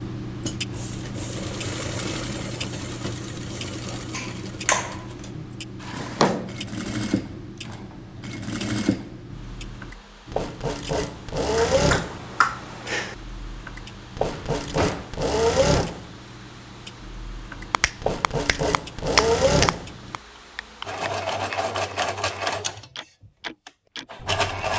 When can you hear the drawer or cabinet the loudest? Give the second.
6 s.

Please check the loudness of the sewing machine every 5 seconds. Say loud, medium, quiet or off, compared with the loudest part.
medium, medium, loud, loud, loud.